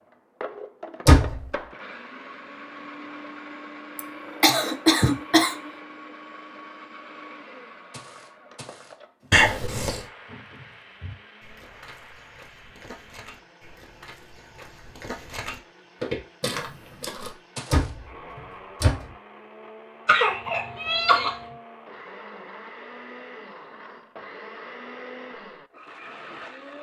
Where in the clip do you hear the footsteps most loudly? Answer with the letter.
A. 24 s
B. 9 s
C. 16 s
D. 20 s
C.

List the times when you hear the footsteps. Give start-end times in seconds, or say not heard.
7.9-18.4.